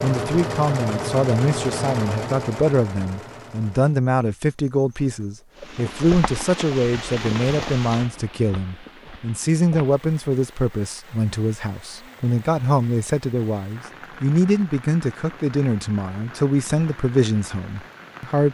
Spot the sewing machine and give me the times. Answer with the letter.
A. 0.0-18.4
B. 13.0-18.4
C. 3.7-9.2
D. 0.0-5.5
D.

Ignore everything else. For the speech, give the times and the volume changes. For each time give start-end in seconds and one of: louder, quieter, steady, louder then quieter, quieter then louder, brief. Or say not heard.
0.0-18.4 steady.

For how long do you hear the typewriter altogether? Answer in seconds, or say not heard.
not heard.